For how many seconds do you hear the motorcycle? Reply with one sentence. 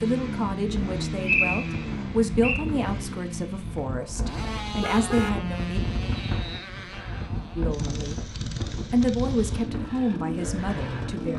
The motorcycle can be heard for 11 seconds in total.